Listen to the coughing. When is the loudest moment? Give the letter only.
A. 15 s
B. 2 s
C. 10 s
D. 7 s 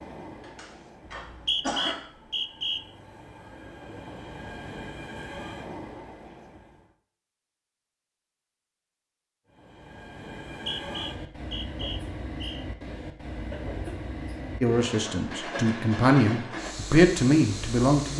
B.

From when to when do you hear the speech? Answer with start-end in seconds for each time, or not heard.
14.6-18.1.